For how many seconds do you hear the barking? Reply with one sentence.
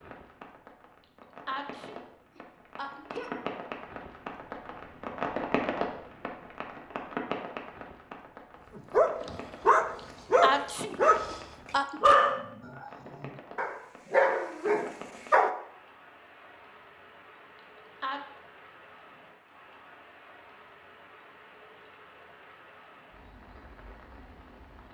You can hear the barking for 6 seconds altogether.